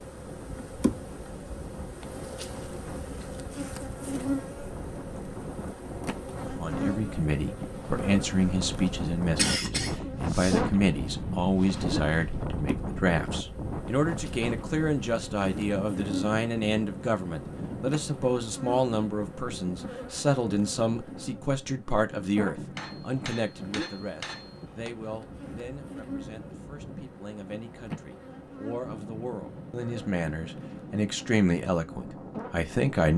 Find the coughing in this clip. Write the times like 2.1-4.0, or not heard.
9.3-10.7.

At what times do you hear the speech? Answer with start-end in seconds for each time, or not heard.
6.5-33.1.